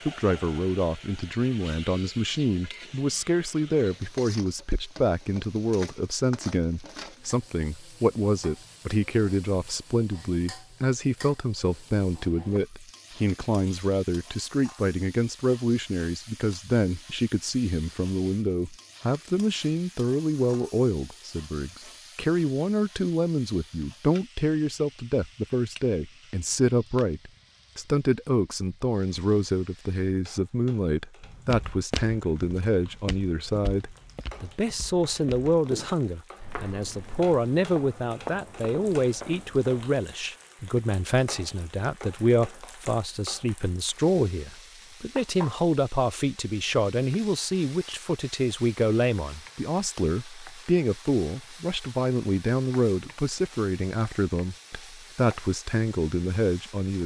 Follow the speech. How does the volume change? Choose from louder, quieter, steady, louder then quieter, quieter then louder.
steady.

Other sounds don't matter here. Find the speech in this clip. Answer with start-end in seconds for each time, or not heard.
0.1-57.0.